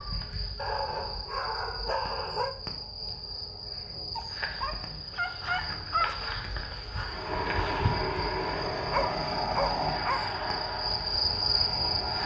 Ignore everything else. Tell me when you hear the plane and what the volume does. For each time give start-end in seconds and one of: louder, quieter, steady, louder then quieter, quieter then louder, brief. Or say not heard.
7.0-12.2 quieter.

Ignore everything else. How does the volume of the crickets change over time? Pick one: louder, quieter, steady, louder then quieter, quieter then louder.
louder.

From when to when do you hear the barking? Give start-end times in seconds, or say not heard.
0.6-2.5, 4.2-6.2, 8.9-10.3.